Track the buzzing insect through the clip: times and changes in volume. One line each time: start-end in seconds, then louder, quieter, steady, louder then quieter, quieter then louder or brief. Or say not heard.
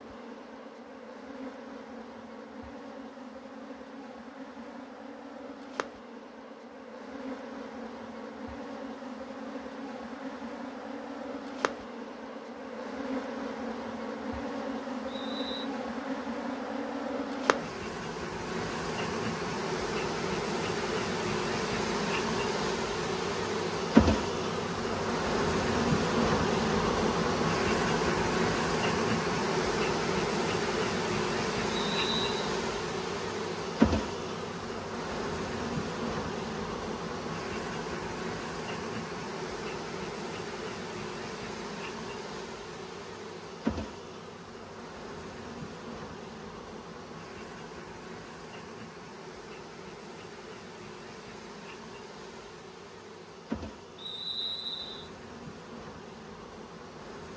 0.0-57.3 louder then quieter.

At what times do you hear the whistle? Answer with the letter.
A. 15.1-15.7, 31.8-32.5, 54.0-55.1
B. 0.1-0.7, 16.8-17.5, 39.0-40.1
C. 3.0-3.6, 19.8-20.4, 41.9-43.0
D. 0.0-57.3
A.